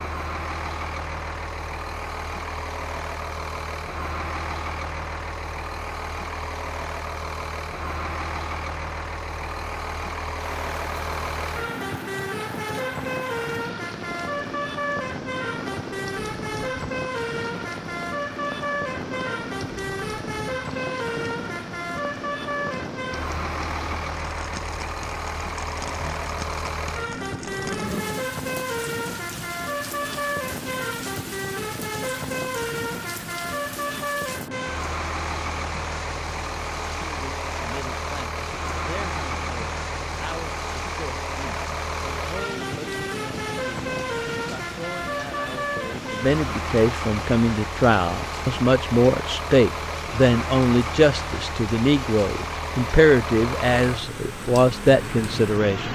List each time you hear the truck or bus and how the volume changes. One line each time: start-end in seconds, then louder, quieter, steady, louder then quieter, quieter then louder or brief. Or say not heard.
0.0-55.9 steady.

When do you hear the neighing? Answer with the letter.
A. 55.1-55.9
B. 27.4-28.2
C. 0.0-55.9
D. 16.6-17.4
B.